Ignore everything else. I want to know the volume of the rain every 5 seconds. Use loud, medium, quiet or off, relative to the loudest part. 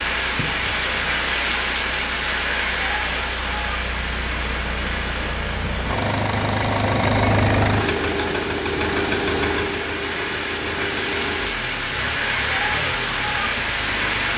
loud, medium, loud.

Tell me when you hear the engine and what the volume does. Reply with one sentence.
You can hear the engine from 0.0 to 14.3 s, getting louder then quieter.